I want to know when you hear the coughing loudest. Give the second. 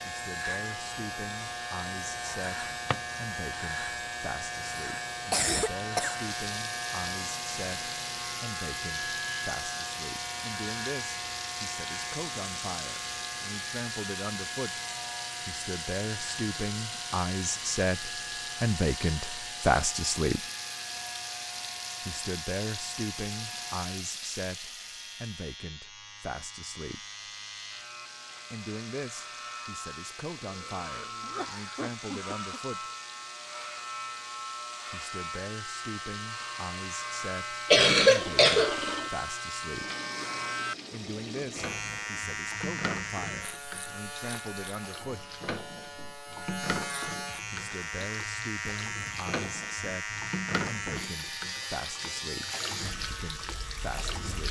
38 s.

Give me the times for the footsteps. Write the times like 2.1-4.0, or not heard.
not heard.